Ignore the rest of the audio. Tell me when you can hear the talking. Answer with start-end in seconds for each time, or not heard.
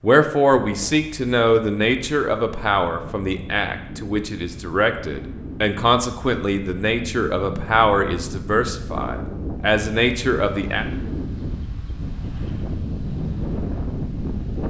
0.0-10.8.